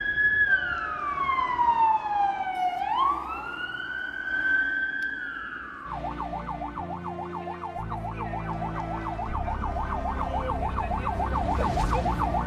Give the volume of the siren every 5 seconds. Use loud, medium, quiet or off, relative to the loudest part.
loud, medium, loud.